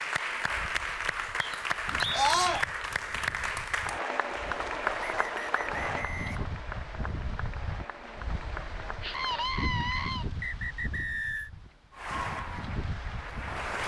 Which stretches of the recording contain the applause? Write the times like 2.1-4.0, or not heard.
0.0-9.6, 11.9-13.8.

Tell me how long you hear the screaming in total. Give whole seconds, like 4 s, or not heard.
2 s.